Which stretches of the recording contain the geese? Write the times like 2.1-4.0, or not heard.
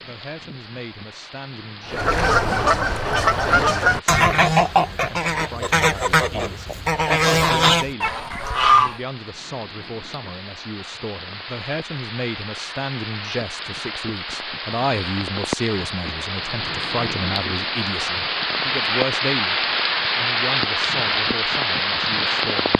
1.9-9.0.